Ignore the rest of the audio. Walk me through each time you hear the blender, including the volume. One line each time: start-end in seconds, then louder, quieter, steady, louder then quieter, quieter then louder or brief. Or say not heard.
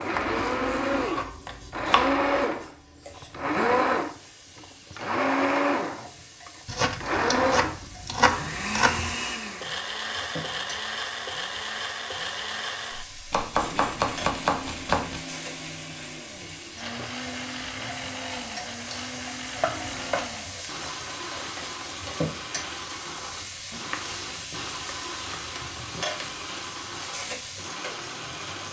0.0-28.6 quieter.